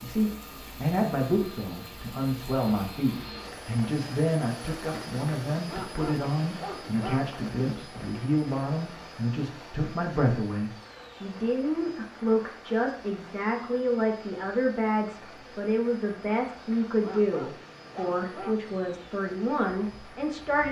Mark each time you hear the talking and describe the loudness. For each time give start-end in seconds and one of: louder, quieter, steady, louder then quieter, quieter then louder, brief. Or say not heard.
0.0-20.6 steady.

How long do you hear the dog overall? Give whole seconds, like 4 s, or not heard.
3 s.